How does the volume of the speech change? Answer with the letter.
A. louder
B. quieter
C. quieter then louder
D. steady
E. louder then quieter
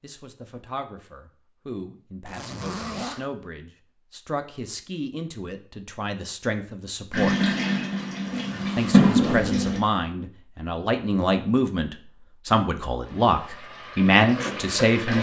A.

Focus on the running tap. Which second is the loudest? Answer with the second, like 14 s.
9 s.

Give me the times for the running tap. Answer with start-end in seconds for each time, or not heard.
7.1-9.8, 13.1-15.1.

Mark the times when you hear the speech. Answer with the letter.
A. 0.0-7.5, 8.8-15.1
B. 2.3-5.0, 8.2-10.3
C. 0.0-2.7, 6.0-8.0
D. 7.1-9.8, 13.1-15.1
A.